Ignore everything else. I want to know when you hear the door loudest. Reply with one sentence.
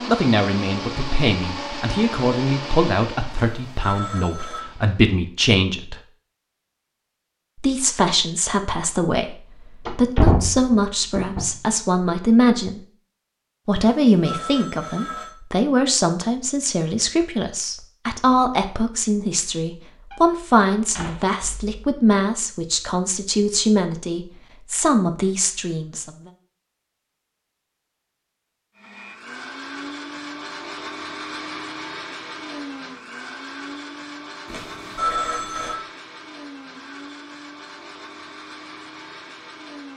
The loudest moment of the door is at 10 seconds.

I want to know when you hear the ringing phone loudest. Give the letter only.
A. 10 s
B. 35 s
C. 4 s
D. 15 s
B.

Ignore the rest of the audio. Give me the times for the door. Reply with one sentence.
You can hear the door from 9.8 to 11.5 s and from 20.1 to 21.8 s.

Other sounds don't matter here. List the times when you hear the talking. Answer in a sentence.
The talking can be heard from 0.1 to 6.0 s, from 7.6 to 12.8 s and from 13.7 to 26.3 s.